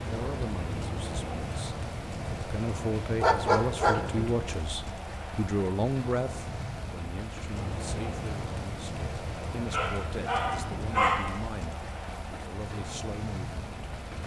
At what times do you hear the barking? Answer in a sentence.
The barking can be heard from 3.2 to 4.3 s and from 9.7 to 11.4 s.